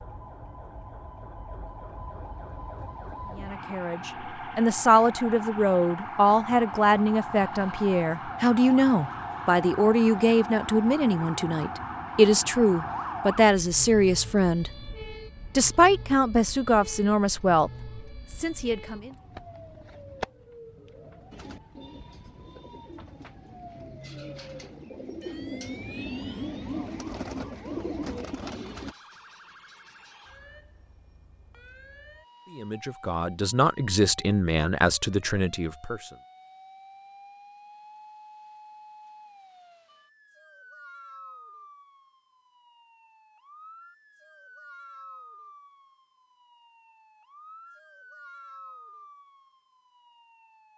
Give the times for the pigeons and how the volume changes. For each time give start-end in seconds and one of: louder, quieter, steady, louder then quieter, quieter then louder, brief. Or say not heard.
21.3-28.9 louder.